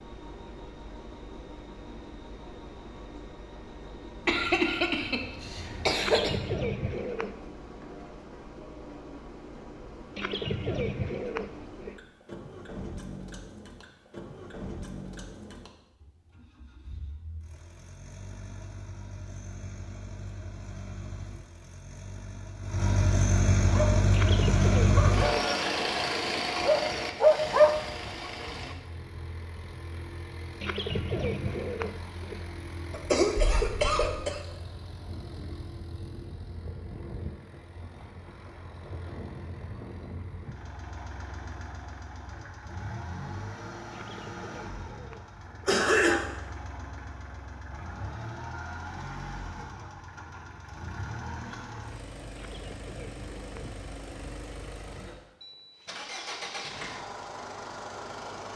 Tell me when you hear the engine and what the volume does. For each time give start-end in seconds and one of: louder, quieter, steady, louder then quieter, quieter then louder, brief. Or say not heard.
0.0-58.5 louder then quieter.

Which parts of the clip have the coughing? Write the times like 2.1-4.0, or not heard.
4.2-6.3, 32.9-34.4, 45.6-46.2.